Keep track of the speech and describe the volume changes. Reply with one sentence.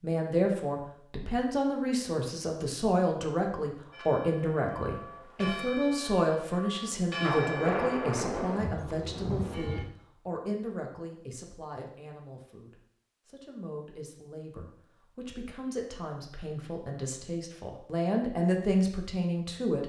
The loudness of the speech goes down, then up.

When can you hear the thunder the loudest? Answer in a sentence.
The volume of the thunder peaks at 8 seconds.